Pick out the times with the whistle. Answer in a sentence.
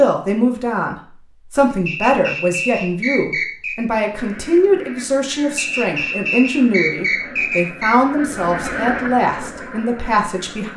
The whistle can be heard from 1.9 to 3.9 s and from 5.5 to 8.0 s.